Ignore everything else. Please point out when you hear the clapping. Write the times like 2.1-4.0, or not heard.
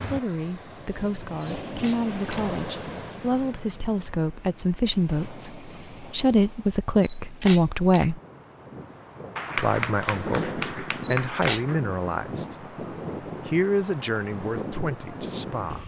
9.3-11.8.